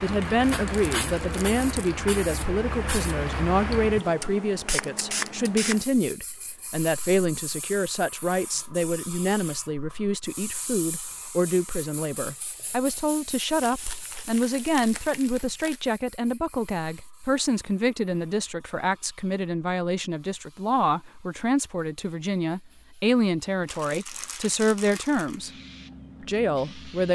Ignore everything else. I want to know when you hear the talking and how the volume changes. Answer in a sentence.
You can hear the talking from 0.0 to 25.5 s, at a steady volume; and briefly from 26.2 to 27.1 s.